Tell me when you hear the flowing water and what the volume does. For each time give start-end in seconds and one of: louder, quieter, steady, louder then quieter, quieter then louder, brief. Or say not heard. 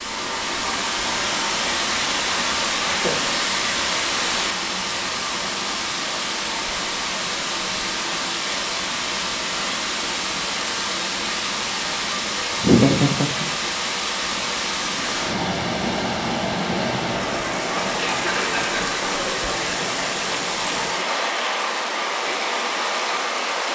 0.0-23.6 steady.